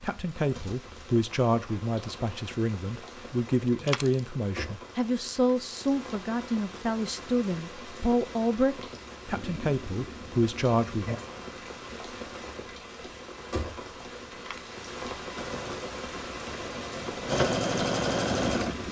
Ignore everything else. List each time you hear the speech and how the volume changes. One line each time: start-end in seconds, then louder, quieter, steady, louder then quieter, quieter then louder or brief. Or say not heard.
0.0-11.2 steady.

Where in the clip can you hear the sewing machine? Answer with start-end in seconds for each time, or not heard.
15.3-18.8.